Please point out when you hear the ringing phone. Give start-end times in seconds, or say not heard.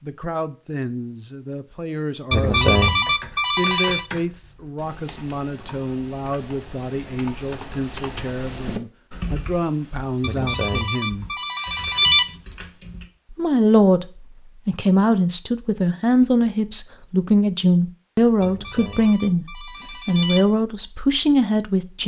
2.3-4.0, 10.2-12.2, 18.4-20.4.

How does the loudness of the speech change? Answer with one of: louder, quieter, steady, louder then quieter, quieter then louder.
louder.